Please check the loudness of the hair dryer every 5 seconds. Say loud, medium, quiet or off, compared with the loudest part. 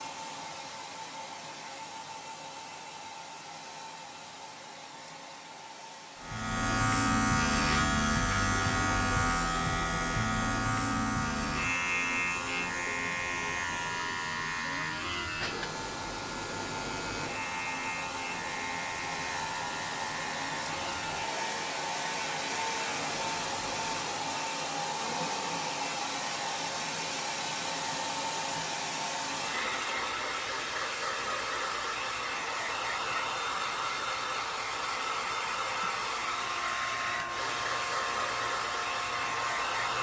medium, quiet, medium, medium, loud, loud, loud, loud.